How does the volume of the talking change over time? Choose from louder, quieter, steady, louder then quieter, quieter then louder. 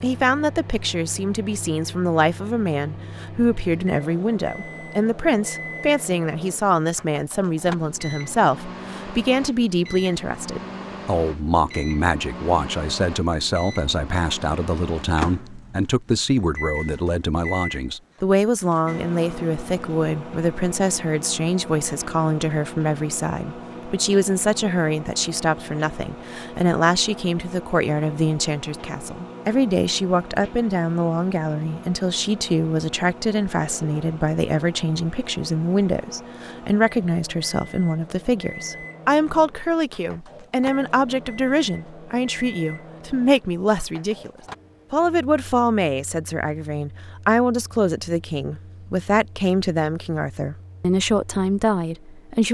steady.